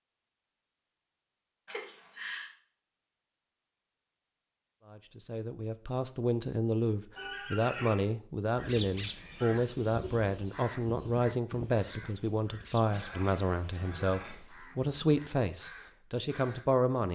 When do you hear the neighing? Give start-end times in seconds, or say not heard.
1.6-2.5, 7.2-8.1, 12.8-14.5.